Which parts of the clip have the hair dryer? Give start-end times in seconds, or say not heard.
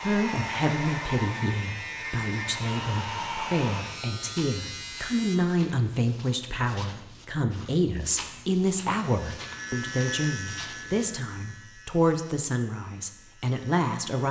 0.0-3.9.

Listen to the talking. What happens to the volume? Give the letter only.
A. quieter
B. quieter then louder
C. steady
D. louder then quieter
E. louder
C.